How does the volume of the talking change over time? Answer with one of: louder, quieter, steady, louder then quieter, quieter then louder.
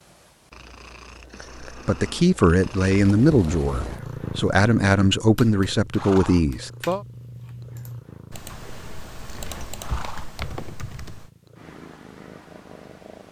steady.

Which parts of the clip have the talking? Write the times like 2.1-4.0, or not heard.
1.9-7.0.